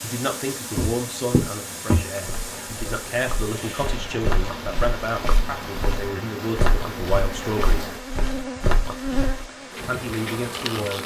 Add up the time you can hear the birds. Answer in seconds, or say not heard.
not heard.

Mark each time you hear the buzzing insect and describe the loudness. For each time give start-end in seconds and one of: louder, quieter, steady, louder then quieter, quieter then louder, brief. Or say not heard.
0.0-11.0 louder.